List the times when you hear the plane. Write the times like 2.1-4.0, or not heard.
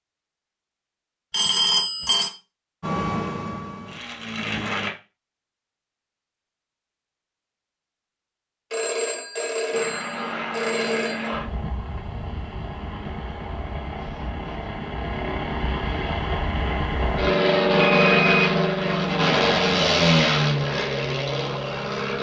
2.8-4.9, 9.7-22.1.